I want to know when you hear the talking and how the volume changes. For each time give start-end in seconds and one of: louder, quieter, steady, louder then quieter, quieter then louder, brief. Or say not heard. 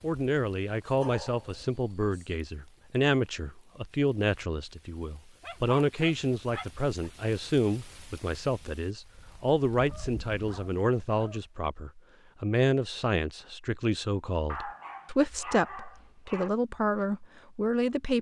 0.0-18.1 steady.